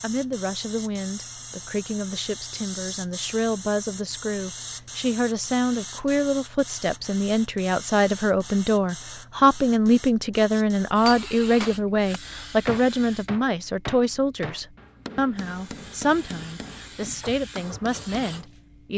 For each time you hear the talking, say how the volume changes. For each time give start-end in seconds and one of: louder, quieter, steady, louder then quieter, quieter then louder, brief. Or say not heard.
0.0-18.9 louder then quieter.